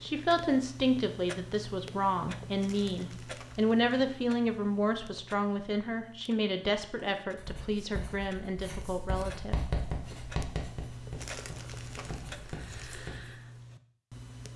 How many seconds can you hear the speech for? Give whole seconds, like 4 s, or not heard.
10 s.